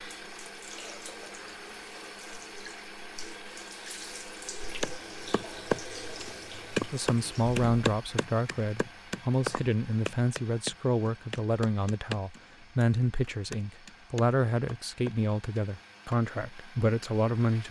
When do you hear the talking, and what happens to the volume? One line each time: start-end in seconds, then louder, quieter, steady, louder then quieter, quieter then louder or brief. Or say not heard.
6.9-17.6 steady.